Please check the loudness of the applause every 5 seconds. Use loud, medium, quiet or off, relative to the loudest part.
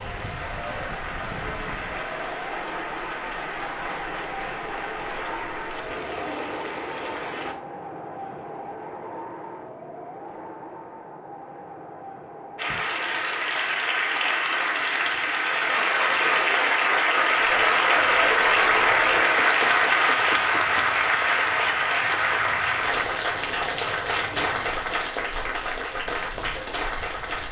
quiet, quiet, medium, loud, loud, medium.